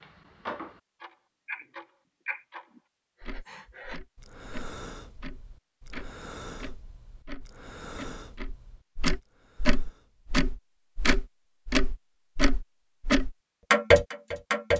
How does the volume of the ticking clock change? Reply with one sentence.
The loudness of the ticking clock goes down, then up.